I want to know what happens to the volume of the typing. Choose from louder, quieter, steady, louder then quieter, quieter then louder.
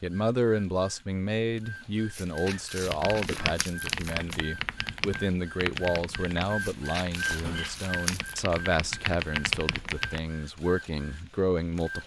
quieter then louder.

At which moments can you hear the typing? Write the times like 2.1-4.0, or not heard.
2.8-10.2.